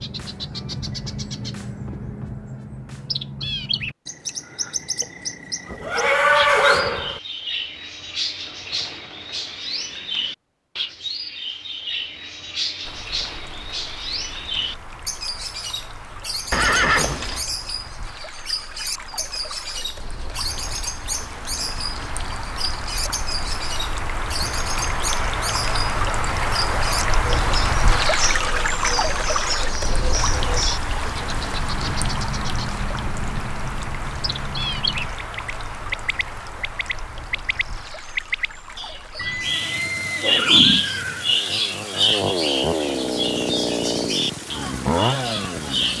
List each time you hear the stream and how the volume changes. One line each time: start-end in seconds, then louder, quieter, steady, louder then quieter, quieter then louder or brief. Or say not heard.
12.8-45.9 louder then quieter.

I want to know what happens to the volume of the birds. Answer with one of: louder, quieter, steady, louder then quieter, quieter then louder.
louder.